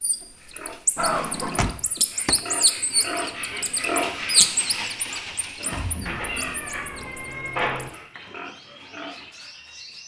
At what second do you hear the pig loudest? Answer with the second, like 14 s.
4 s.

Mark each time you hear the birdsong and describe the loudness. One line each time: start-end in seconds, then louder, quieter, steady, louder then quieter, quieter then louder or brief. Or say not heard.
0.0-10.0 louder then quieter.